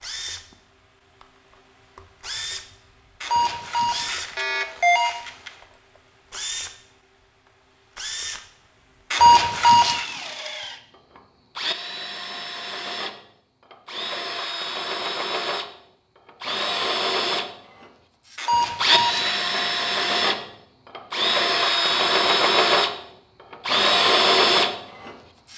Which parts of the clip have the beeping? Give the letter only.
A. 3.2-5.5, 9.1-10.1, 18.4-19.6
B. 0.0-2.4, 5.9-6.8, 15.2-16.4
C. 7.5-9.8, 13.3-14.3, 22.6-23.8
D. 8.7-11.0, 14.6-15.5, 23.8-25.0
A.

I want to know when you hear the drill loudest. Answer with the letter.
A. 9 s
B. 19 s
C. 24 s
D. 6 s
C.